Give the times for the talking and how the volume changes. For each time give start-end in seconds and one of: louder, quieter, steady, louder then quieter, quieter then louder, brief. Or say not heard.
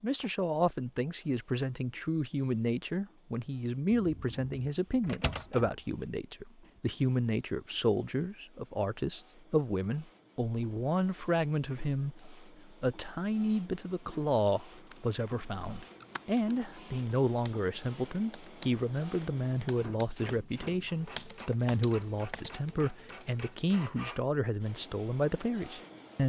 0.0-26.2 steady.